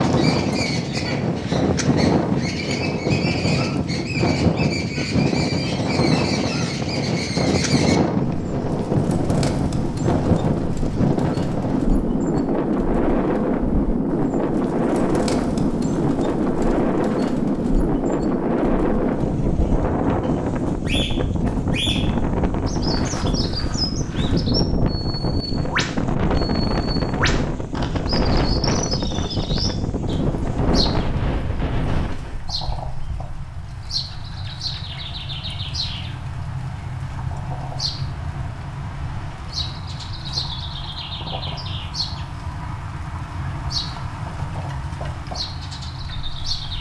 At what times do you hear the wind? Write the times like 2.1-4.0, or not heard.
0.0-32.4.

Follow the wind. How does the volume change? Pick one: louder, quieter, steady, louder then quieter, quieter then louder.
steady.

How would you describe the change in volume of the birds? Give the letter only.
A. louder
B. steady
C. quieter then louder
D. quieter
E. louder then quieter
B.